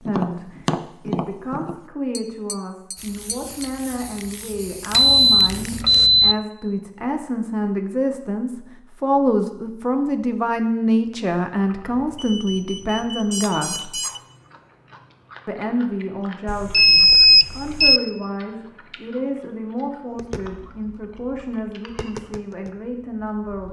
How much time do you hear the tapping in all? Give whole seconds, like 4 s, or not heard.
7 s.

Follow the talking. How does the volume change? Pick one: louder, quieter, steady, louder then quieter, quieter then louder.
louder then quieter.